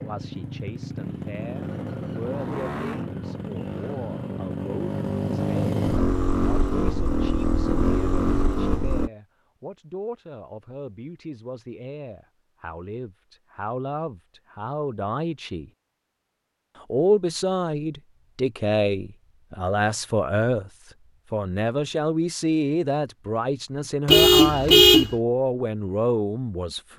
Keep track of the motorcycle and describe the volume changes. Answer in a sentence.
The loudness of the motorcycle goes up.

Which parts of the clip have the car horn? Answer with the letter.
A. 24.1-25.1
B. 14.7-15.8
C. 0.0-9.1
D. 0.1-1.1
A.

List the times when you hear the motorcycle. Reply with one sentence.
You can hear the motorcycle from 0.0 to 9.1 s.